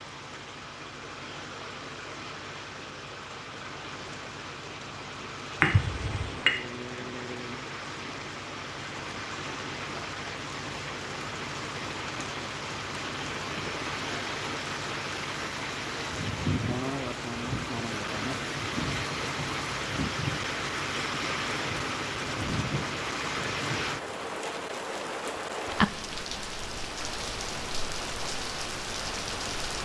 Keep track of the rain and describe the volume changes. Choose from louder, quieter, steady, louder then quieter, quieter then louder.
louder.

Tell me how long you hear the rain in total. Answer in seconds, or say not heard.
30 s.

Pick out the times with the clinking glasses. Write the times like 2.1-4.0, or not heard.
5.6-6.5.